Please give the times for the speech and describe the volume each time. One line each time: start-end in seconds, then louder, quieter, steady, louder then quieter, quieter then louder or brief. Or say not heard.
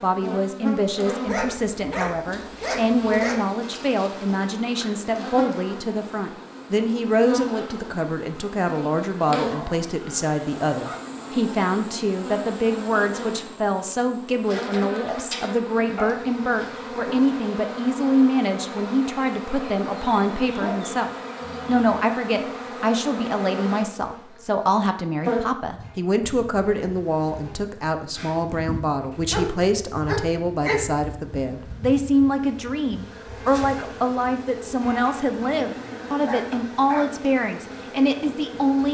0.0-38.9 steady.